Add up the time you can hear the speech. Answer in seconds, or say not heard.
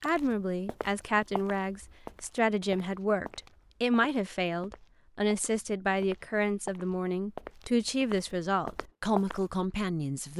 10 s.